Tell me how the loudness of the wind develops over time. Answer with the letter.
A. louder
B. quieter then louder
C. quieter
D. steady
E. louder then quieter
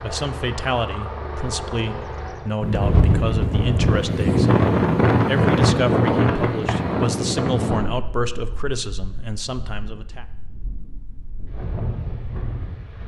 B.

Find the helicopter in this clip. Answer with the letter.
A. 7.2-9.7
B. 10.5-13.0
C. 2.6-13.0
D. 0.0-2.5
D.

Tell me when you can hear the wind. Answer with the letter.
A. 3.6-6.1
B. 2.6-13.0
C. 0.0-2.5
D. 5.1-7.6
B.